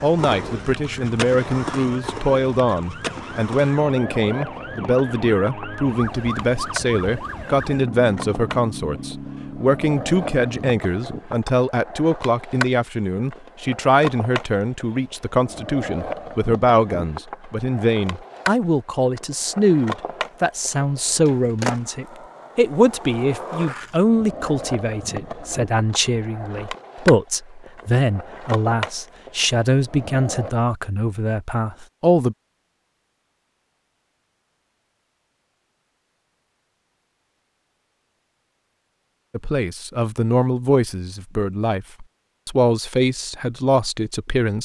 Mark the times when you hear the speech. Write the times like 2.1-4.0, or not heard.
0.0-32.4, 39.3-44.6.